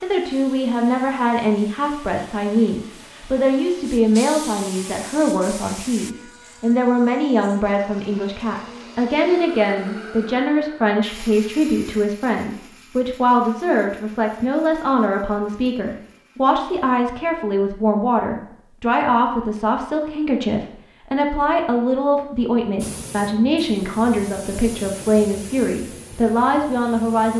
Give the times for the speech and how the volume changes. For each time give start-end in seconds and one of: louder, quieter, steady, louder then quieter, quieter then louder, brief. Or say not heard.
0.0-27.3 steady.